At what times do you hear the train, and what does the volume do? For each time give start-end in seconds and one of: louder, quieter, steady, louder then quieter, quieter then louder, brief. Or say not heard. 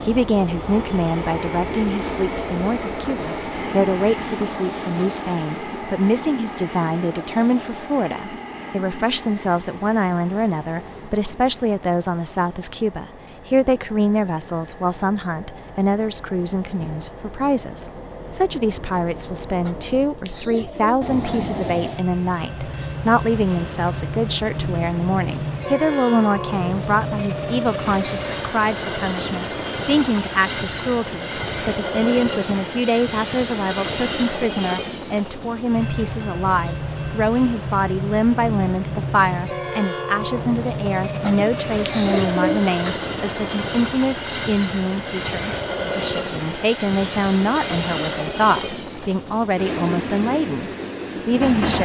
0.0-51.8 quieter then louder.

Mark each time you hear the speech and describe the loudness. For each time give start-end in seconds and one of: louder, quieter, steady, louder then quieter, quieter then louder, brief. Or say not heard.
0.0-51.8 steady.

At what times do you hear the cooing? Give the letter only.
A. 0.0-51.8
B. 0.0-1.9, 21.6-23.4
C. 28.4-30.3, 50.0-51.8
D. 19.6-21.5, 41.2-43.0
D.